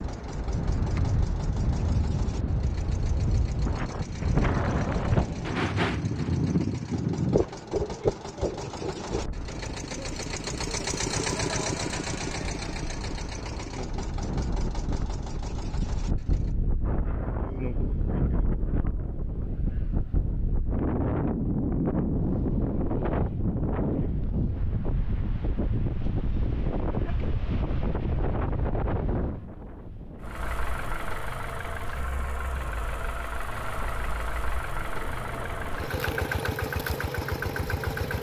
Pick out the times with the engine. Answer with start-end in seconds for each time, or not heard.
0.0-16.6, 30.2-38.1.